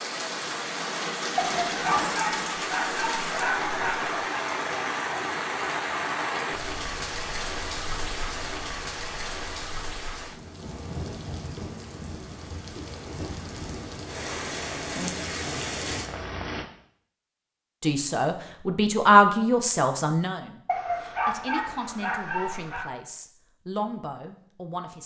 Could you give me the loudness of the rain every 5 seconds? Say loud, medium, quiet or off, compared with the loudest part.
loud, loud, medium, loud, off.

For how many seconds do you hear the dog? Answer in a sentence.
The dog can be heard for 5 seconds in total.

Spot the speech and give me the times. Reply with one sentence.
The speech can be heard from 17.8 to 25.0 s.